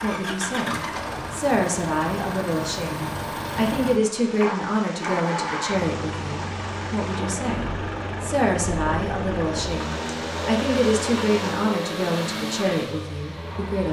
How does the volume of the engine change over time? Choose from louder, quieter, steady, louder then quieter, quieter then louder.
steady.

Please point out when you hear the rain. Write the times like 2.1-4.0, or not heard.
0.2-11.8.